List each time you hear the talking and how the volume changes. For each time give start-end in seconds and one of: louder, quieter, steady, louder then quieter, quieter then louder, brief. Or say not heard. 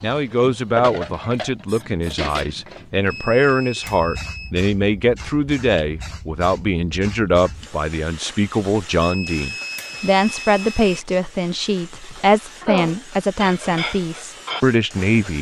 0.0-15.3 steady.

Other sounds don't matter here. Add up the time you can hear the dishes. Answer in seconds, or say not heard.
7 s.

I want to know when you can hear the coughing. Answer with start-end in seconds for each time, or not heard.
0.3-0.8.